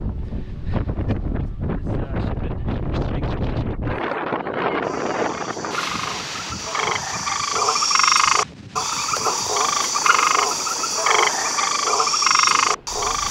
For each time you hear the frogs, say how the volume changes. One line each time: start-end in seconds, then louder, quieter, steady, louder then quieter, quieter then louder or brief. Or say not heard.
4.8-13.2 louder.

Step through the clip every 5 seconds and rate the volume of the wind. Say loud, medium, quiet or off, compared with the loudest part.
loud, medium, quiet.